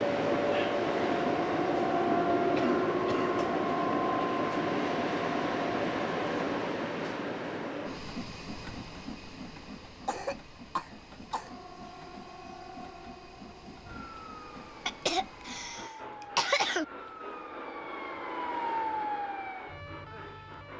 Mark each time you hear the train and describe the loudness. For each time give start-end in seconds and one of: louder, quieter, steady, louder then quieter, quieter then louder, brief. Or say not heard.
0.0-20.7 quieter.